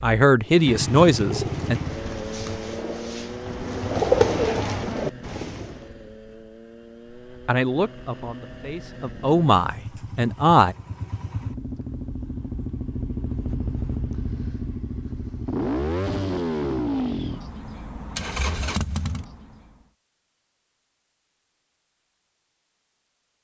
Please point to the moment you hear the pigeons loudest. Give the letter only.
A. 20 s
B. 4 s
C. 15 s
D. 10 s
B.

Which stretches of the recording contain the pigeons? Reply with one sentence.
The pigeons can be heard from 0.4 to 5.9 s.